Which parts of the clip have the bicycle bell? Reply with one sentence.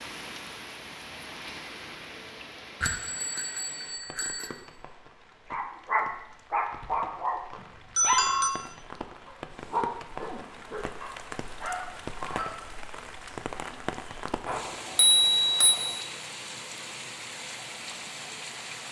The bicycle bell can be heard from 2.8 to 4.5 s, from 7.5 to 8.5 s and from 14.4 to 16.0 s.